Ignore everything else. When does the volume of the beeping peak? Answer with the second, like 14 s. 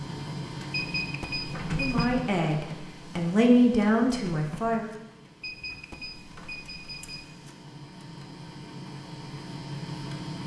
1 s.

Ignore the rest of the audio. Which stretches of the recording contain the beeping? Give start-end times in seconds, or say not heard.
0.7-2.1, 5.4-7.3.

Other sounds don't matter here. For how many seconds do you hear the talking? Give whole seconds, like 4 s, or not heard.
3 s.